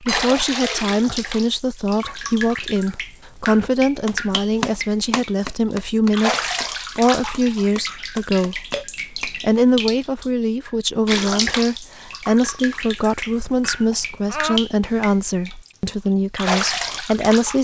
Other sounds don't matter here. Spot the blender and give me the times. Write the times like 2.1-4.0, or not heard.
not heard.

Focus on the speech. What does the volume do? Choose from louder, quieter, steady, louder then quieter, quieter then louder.
steady.